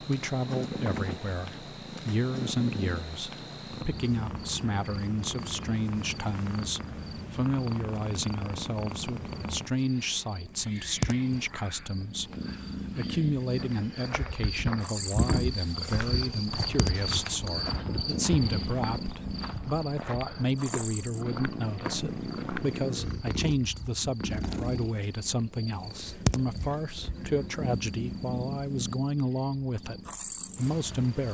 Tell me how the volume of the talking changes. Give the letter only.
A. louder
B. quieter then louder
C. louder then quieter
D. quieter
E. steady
E.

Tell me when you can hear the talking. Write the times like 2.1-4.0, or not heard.
0.0-31.3.